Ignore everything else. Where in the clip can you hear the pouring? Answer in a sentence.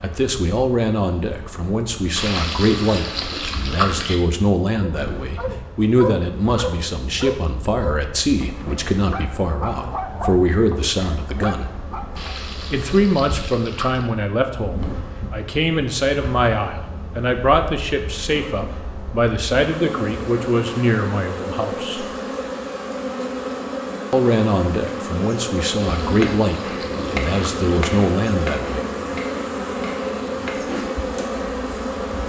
You can hear the pouring from 2.1 to 4.2 s, from 12.2 to 14.1 s and from 25.8 to 27.8 s.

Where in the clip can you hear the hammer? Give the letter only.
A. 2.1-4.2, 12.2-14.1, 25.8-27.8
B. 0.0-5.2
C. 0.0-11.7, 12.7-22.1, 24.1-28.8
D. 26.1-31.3
D.